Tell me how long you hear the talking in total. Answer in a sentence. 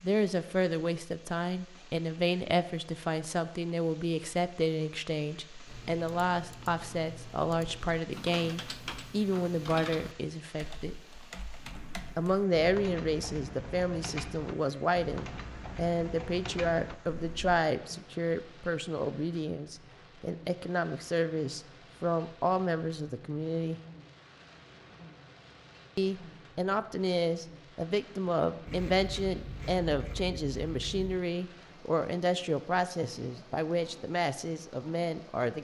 You can hear the talking for 32 seconds altogether.